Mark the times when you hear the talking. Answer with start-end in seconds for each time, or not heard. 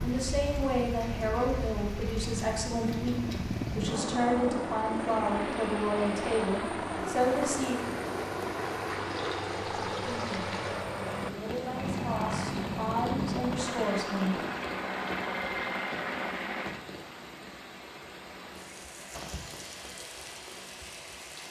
0.0-7.8, 10.1-14.3.